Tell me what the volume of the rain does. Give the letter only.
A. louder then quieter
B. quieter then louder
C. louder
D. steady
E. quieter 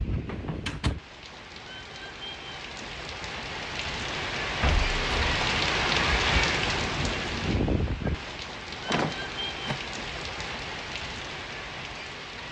A.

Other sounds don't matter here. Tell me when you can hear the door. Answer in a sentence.
You can hear the door from 0.2 to 1.0 s, from 4.6 to 5.3 s and from 8.8 to 9.8 s.